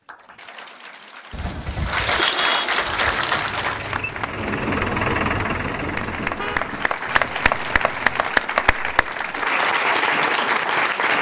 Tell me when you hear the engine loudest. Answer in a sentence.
The loudest moment of the engine is at 5 seconds.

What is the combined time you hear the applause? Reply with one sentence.
The applause can be heard for 11 seconds in total.